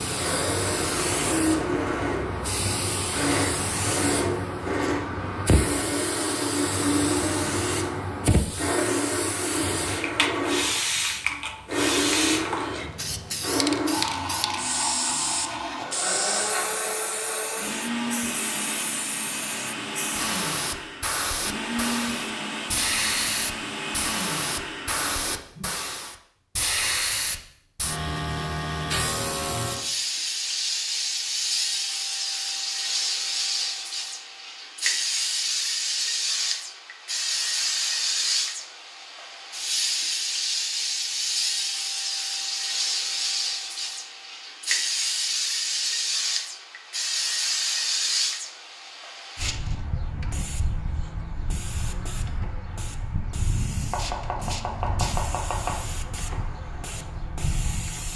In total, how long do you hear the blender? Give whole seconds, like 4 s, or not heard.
26 s.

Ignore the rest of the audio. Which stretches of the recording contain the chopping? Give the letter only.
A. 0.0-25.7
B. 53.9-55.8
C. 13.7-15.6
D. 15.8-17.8
B.